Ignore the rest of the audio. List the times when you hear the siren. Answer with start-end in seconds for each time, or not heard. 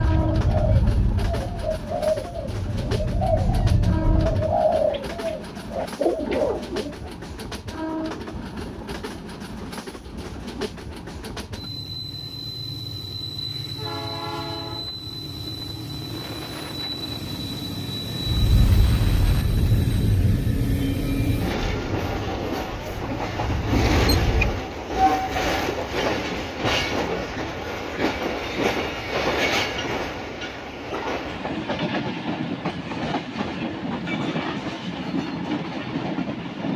0.0-4.6, 18.2-24.6.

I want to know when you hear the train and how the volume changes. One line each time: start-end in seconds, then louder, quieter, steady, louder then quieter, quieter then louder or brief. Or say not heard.
0.0-36.7 louder.